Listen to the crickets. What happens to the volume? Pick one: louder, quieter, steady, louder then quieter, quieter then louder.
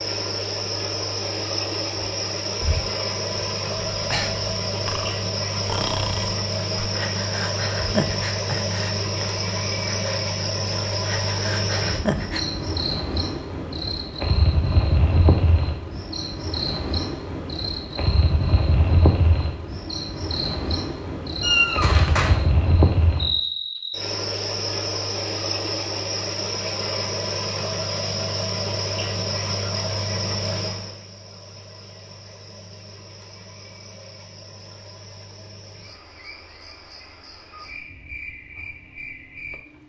quieter.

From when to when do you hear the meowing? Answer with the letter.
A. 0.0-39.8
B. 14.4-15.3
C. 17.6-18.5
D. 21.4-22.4
D.